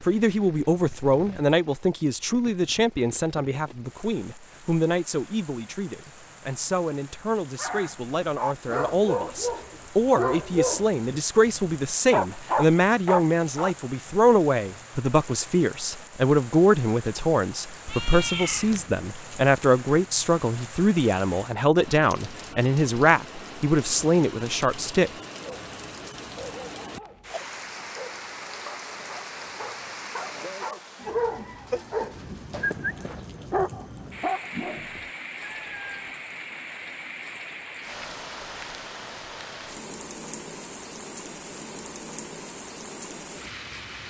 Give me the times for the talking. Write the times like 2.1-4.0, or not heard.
0.0-25.1.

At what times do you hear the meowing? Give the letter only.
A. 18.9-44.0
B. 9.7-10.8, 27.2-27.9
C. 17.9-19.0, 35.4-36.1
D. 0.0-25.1
C.